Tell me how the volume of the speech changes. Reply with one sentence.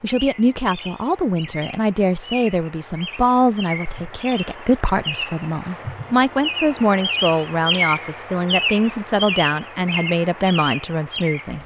The volume of the speech stays about the same.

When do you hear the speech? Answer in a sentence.
You can hear the speech from 0.0 to 11.6 s.